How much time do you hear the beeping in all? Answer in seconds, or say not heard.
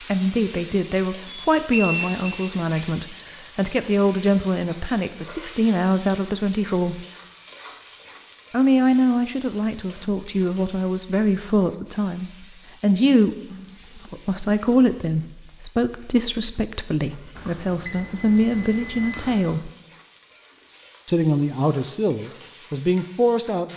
3 s.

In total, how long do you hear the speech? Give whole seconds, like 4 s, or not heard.
21 s.